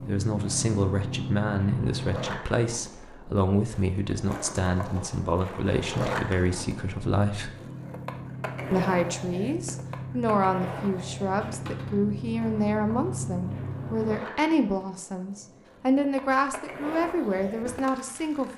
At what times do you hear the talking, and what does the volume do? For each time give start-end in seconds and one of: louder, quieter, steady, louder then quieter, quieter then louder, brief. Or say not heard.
0.0-7.5 steady
8.7-18.5 steady.